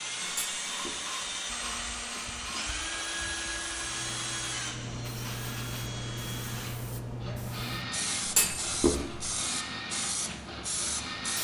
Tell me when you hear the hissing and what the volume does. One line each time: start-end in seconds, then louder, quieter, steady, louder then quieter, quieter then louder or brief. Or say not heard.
0.1-11.3 louder.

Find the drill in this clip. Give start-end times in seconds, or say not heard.
0.0-11.3.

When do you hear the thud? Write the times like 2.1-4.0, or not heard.
0.2-0.9, 8.2-9.2.